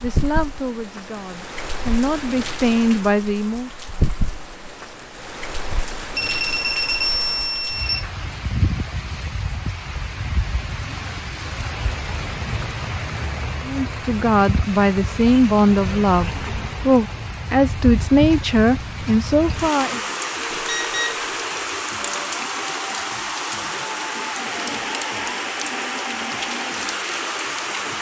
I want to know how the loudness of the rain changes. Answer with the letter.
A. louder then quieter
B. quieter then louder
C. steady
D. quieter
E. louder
E.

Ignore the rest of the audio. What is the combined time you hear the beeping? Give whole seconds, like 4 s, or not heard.
3 s.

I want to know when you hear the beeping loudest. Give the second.
7 s.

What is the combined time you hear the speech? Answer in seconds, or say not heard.
10 s.